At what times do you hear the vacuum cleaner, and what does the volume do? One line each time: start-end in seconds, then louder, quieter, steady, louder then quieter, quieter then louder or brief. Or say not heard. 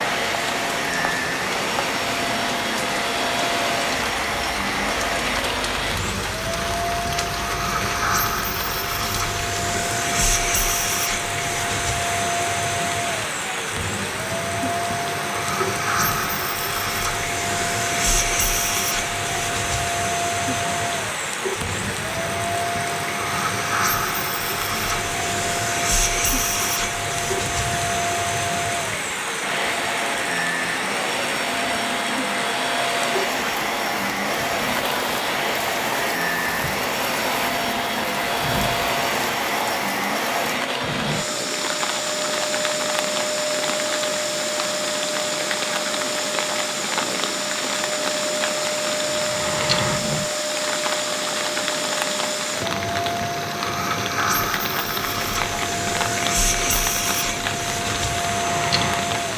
0.0-59.3 steady.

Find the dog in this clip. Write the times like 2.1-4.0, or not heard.
not heard.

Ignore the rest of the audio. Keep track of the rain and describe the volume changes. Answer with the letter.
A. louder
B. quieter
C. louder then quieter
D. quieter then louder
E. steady
E.